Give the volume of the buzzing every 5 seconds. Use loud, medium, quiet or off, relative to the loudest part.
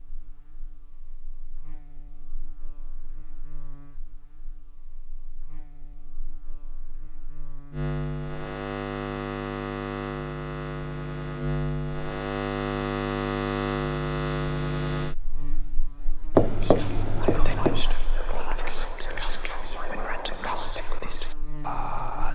quiet, medium, loud, quiet, quiet.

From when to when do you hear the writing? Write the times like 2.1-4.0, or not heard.
16.4-17.9.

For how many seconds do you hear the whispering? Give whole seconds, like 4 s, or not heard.
6 s.